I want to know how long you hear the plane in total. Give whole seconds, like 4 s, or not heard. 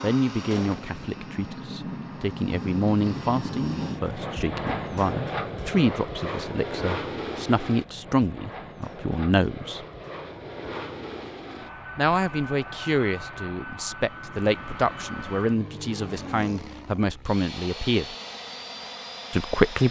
20 s.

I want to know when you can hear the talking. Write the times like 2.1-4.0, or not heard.
0.0-9.8, 11.9-18.1, 19.3-19.8.